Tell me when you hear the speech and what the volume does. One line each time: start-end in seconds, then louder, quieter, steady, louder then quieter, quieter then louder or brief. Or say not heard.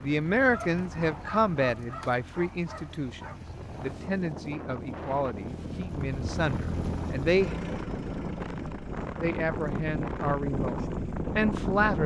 0.0-7.6 quieter
9.2-12.0 brief.